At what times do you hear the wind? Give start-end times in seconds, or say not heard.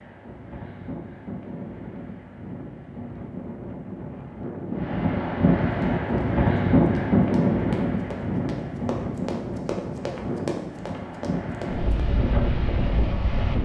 0.0-13.6.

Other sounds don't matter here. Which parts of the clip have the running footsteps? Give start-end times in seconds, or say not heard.
5.7-12.2.